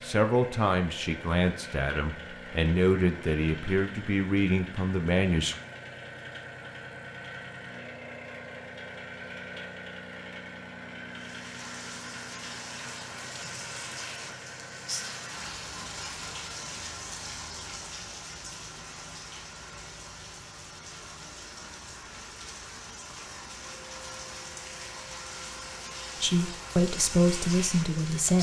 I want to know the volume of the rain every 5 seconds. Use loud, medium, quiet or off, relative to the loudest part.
off, off, loud, loud, medium, loud.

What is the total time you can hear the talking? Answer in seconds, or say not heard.
8 s.